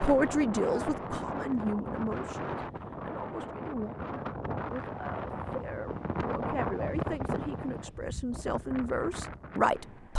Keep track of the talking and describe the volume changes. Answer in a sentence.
The volume of the talking goes down, then up.